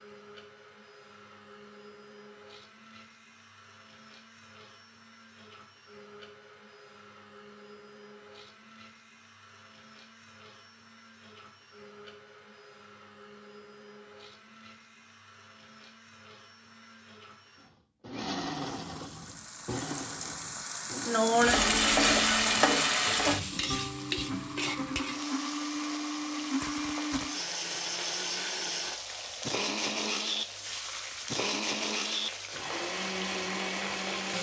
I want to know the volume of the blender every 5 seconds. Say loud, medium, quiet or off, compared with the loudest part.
quiet, quiet, quiet, medium, medium, loud, loud.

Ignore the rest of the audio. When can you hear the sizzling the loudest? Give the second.
22 s.